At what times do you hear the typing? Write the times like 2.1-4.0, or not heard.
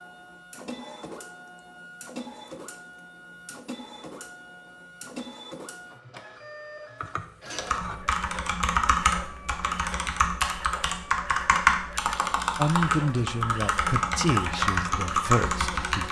7.5-16.0.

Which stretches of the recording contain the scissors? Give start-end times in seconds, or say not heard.
7.0-8.1.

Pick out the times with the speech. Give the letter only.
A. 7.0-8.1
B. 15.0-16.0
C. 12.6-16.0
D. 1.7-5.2
C.